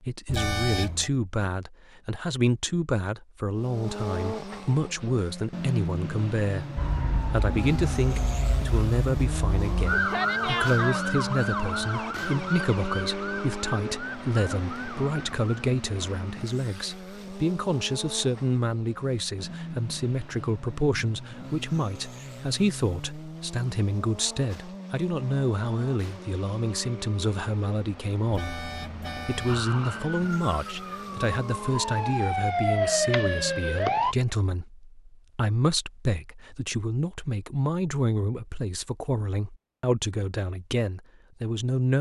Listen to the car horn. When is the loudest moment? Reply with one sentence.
The loudest moment of the car horn is at 1 second.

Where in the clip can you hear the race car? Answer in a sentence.
The race car can be heard from 3.5 to 33.7 s.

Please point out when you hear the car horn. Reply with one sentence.
The car horn can be heard from 0.2 to 1.1 s and from 28.3 to 29.6 s.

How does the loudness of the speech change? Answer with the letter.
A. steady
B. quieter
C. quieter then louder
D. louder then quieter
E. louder
A.